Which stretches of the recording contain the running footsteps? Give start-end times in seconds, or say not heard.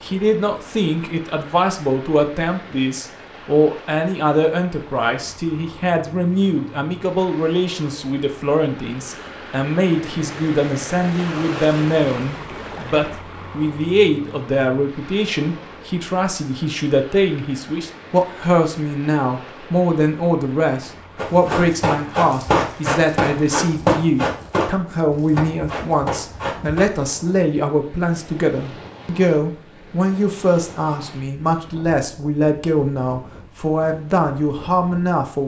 21.1-26.9.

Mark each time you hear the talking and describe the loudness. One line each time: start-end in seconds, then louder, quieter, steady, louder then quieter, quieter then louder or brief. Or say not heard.
0.0-35.4 steady.